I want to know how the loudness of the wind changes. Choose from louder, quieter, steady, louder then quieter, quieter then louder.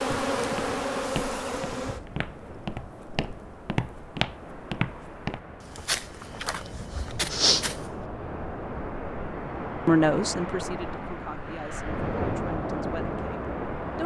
louder.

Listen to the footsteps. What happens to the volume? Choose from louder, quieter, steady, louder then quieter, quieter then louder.
louder.